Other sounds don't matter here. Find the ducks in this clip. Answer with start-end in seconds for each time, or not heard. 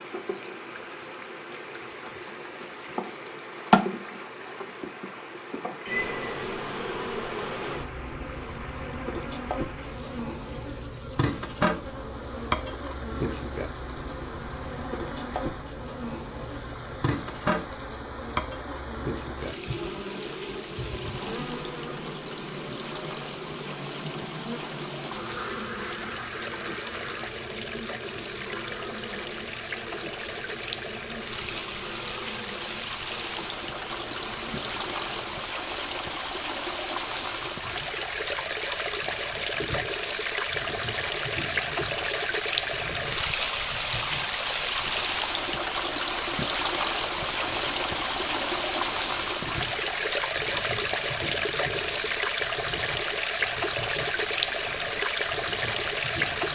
25.2-27.3.